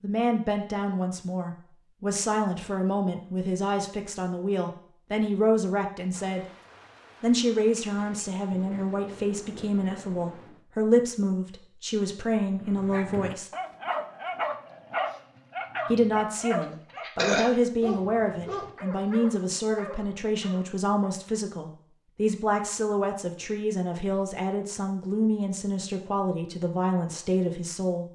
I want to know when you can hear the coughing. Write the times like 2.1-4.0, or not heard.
16.6-17.6.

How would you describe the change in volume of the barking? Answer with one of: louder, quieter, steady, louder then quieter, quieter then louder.
quieter.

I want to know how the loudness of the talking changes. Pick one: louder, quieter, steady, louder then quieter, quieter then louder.
steady.